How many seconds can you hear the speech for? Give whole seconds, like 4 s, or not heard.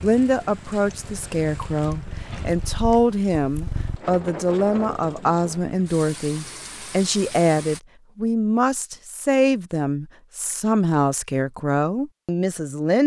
13 s.